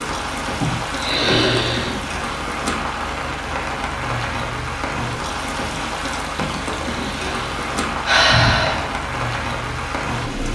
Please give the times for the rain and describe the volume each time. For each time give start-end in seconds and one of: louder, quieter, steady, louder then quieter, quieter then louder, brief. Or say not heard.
0.0-10.4 steady.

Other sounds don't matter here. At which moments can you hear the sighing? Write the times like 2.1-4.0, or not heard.
0.6-1.9, 6.5-8.9.